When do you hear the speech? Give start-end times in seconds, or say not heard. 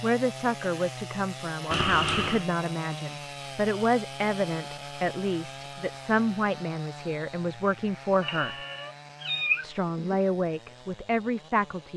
0.0-8.6, 9.6-11.9.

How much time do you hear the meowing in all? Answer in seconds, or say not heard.
3 s.